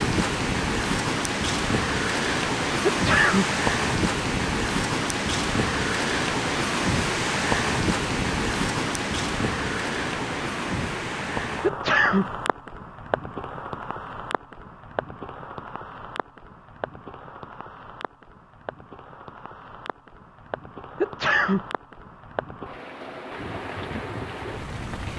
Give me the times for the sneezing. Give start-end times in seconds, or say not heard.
2.9-3.5, 11.6-12.3, 21.0-21.6.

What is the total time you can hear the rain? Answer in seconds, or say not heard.
25 s.